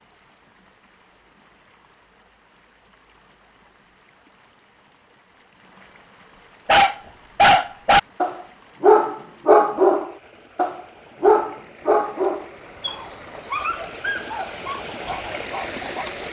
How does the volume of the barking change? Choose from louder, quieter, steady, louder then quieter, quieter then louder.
quieter.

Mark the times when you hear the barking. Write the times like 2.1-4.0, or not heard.
6.7-16.2.